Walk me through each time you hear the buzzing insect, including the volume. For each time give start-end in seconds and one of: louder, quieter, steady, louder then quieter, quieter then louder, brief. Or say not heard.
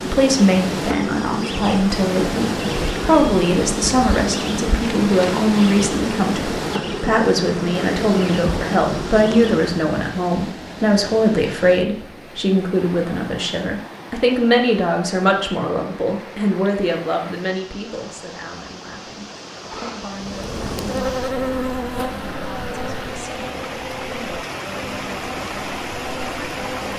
0.0-9.8 steady
20.1-26.9 quieter.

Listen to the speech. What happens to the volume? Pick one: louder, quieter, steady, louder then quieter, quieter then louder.
quieter.